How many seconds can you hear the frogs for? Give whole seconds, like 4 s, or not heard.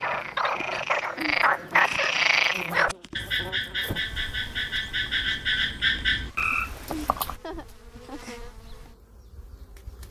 7 s.